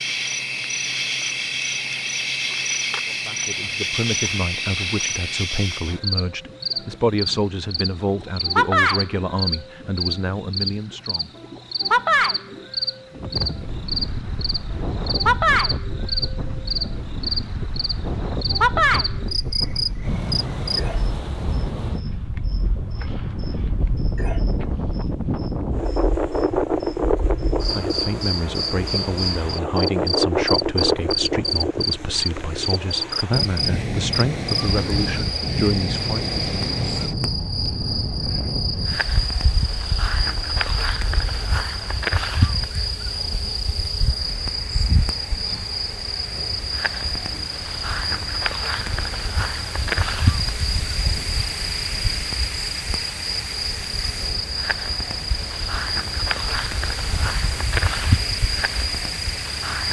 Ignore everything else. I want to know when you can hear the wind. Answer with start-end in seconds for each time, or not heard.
13.1-59.8.